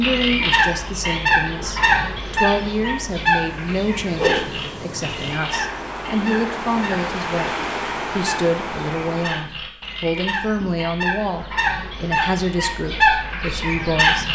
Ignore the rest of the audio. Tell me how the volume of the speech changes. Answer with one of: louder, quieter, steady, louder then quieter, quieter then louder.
steady.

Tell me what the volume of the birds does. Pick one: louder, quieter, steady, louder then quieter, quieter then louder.
quieter then louder.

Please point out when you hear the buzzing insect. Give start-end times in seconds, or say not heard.
not heard.